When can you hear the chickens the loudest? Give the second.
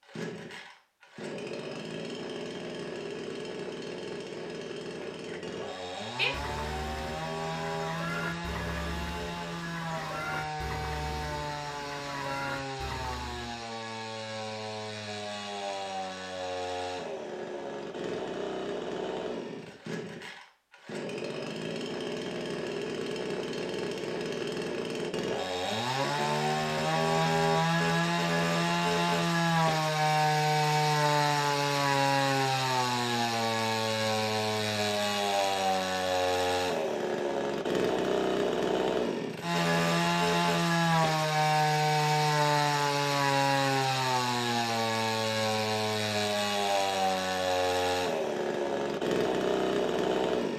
6 s.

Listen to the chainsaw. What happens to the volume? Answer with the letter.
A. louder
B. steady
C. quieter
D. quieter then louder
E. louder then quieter
A.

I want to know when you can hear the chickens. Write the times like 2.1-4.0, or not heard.
5.0-13.6.